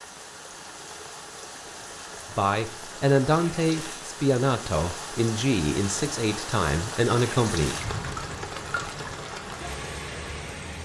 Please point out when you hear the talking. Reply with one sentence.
The talking can be heard from 2.3 to 7.8 s.